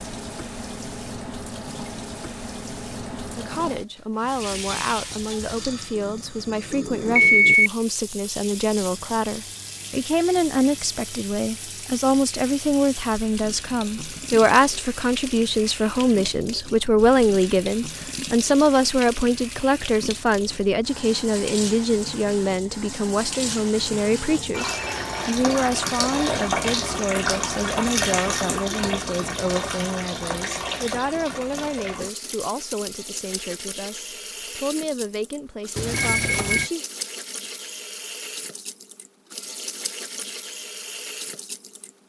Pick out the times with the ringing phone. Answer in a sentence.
The ringing phone can be heard from 7.2 to 7.7 s, from 24.5 to 25.4 s and from 35.8 to 36.7 s.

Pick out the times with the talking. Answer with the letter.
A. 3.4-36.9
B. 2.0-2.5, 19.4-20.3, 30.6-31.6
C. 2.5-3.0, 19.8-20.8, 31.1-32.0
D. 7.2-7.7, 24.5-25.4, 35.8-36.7
A.